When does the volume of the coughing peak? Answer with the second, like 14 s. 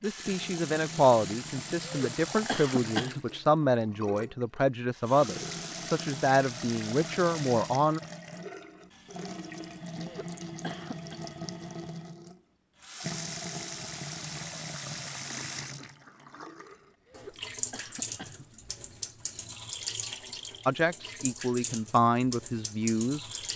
3 s.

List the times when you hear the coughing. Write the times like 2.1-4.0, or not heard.
1.8-3.2, 9.9-11.2, 17.1-18.5.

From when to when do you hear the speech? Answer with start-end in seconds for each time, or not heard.
0.0-8.0, 20.6-23.2.